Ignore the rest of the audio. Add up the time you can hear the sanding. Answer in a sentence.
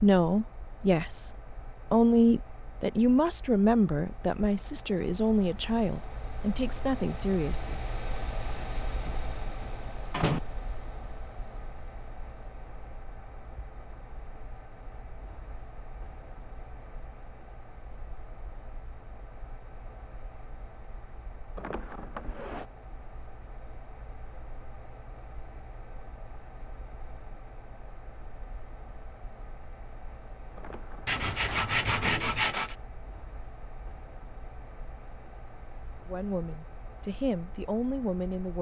The sanding can be heard for 2 seconds in total.